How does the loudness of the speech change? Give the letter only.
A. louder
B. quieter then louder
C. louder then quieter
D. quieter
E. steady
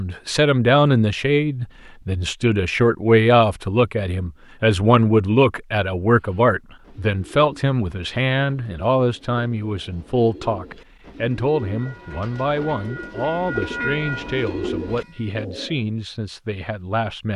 D.